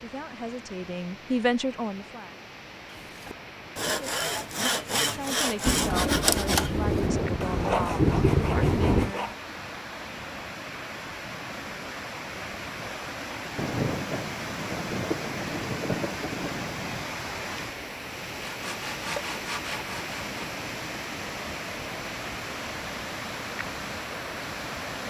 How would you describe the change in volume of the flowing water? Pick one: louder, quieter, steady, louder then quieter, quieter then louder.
louder.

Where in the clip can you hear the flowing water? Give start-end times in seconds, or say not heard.
0.0-25.0.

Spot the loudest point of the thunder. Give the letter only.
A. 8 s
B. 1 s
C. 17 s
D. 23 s
A.